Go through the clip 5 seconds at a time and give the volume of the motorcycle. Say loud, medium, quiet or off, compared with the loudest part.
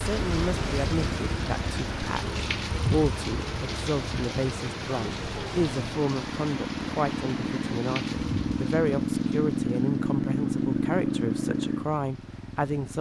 medium, loud, loud.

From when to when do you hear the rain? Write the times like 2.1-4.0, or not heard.
0.0-12.9.